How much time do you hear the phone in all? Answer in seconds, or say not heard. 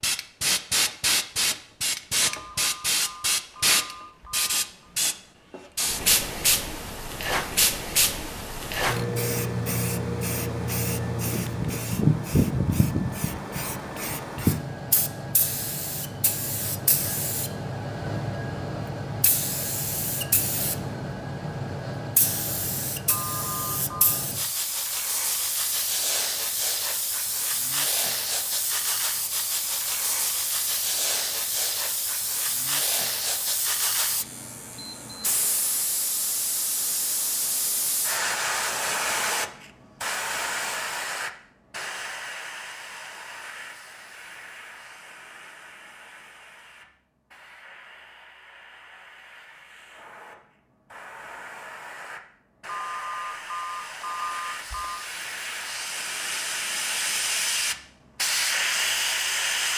6 s.